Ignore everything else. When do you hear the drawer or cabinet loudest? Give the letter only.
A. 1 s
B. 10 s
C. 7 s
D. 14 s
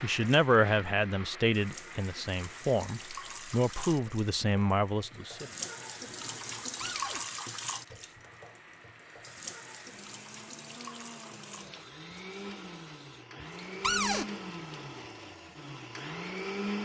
D.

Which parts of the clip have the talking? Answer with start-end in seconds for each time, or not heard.
0.0-5.5.